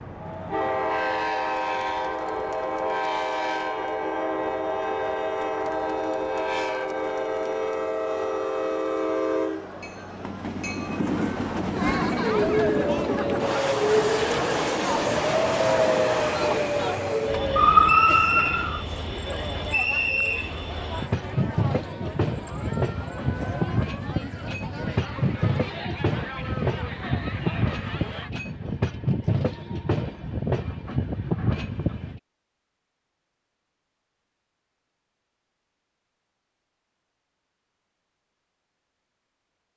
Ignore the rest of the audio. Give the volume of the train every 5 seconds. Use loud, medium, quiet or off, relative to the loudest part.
loud, loud, loud, loud, loud, loud, loud, off.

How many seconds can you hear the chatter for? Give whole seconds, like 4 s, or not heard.
28 s.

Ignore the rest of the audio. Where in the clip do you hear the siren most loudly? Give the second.
18 s.